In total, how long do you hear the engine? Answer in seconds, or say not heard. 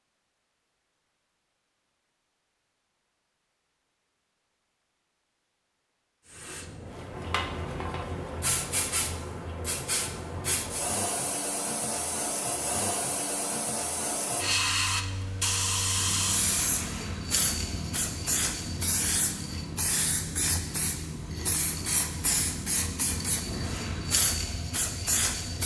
8 s.